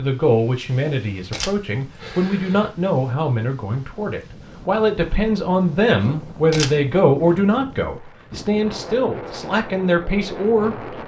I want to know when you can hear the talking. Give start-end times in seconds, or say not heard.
0.0-10.8.